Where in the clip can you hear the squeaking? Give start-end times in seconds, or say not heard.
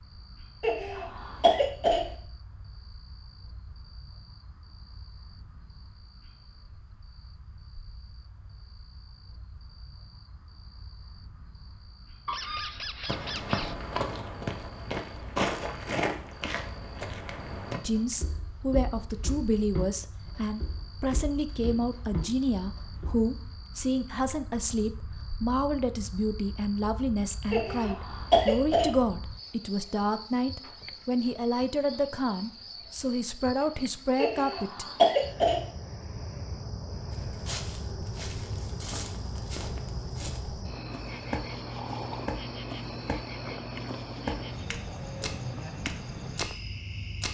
12.2-13.8.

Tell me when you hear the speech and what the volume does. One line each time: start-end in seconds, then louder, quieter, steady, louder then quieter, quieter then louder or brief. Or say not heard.
17.8-34.9 steady.